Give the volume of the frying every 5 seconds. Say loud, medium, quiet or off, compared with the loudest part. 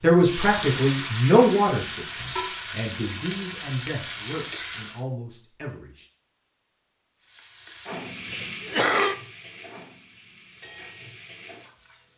loud, medium, quiet.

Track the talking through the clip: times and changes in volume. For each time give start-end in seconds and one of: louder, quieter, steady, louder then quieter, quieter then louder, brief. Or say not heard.
0.0-6.0 quieter.